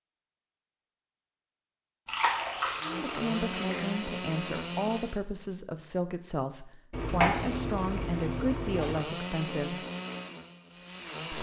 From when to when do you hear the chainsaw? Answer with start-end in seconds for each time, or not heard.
2.8-5.2, 8.7-11.3.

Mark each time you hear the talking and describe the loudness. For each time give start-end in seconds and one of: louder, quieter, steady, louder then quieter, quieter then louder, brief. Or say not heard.
2.8-9.8 steady.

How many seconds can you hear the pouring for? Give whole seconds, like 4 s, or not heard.
4 s.